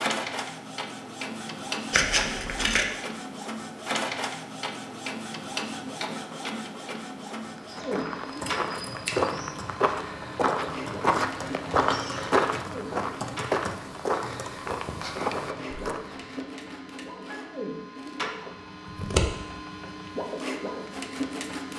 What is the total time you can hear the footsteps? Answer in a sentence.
The footsteps can be heard for 9 seconds in total.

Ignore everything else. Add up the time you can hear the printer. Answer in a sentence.
The printer can be heard for 22 seconds in total.